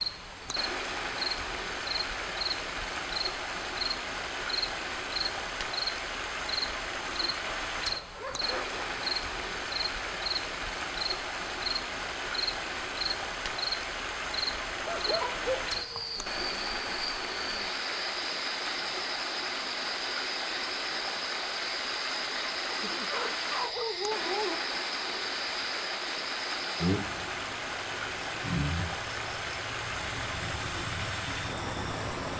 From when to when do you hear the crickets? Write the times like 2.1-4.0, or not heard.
0.0-32.3.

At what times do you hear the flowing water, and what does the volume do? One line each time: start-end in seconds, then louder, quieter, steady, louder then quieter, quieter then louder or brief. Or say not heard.
0.0-32.3 steady.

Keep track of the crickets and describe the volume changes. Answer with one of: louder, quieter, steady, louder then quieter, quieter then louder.
steady.